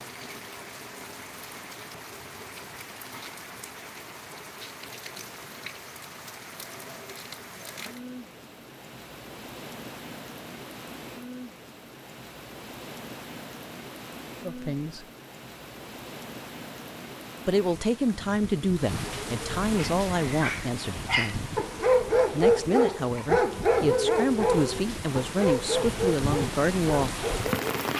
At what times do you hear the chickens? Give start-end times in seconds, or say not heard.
not heard.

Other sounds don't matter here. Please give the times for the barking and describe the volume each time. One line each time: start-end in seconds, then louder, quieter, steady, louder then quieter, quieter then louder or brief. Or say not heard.
19.8-27.6 louder then quieter.